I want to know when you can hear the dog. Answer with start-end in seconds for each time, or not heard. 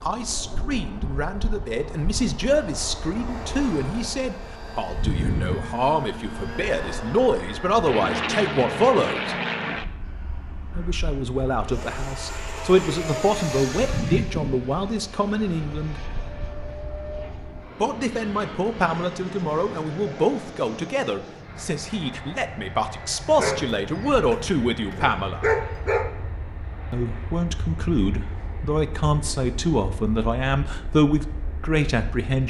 23.4-26.1.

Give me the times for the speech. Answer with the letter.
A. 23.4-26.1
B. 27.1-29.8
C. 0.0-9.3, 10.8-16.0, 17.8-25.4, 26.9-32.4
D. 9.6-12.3
C.